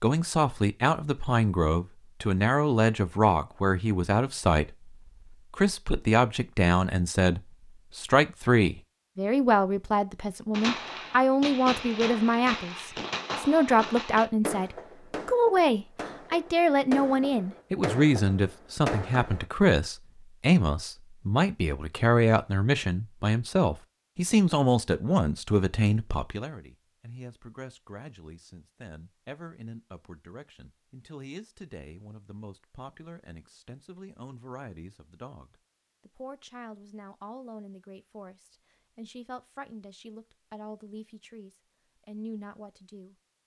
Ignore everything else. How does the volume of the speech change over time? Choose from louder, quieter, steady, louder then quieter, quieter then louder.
quieter.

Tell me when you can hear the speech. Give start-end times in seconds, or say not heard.
0.0-43.1.